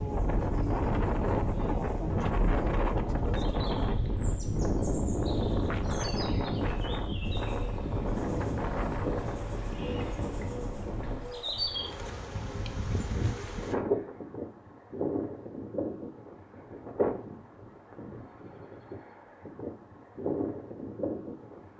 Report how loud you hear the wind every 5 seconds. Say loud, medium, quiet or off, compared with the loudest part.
loud, loud, medium, medium, medium.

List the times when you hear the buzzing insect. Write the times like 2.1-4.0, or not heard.
0.0-13.8.